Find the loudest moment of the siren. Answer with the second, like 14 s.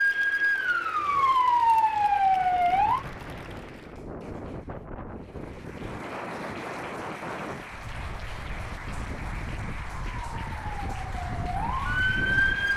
2 s.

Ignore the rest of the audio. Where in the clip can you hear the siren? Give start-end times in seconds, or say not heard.
0.0-3.0, 10.2-12.7.